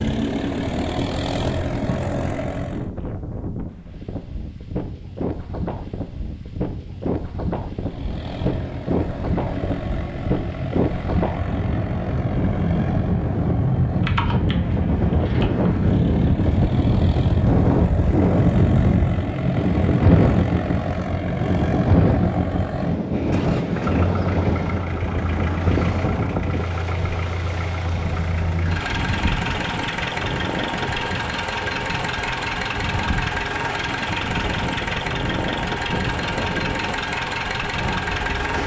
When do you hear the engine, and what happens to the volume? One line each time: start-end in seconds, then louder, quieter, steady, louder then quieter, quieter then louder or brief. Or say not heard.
0.0-2.9 brief
7.8-38.6 louder.